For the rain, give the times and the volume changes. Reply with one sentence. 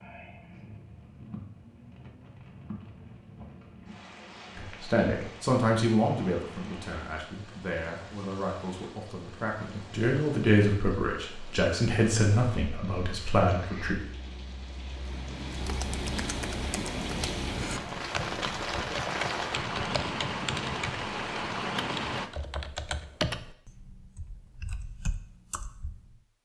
You can hear the rain from 0.0 to 22.3 s, getting louder.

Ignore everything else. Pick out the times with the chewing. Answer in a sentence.
You can't hear the chewing here.